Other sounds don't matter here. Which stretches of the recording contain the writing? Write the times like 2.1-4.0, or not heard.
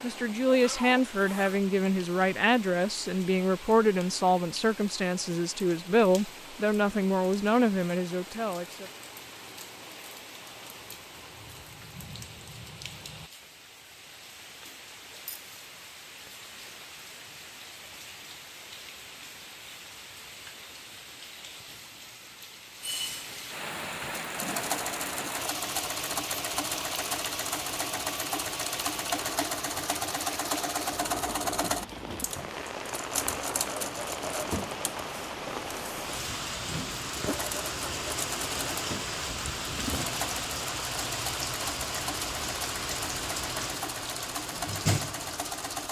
not heard.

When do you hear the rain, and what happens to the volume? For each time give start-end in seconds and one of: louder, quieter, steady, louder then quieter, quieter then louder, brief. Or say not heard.
0.0-45.8 louder.